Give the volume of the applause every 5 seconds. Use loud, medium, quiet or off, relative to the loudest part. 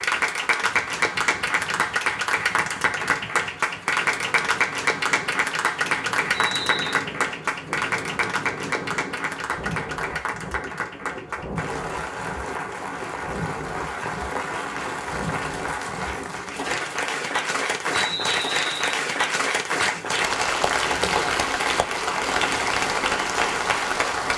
loud, loud, medium, loud, loud.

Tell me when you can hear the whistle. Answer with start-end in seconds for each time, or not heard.
6.3-7.0, 17.9-19.0.